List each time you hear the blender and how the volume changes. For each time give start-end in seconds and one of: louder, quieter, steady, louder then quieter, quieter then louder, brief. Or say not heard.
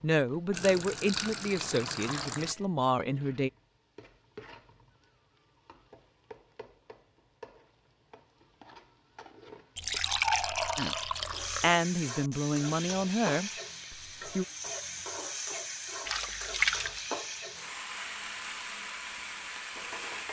not heard.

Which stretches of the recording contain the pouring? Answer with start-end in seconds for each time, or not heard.
0.5-2.5, 9.8-11.8, 16.1-17.1.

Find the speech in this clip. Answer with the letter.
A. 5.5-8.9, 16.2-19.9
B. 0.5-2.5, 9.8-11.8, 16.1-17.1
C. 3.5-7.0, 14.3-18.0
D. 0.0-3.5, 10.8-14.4
D.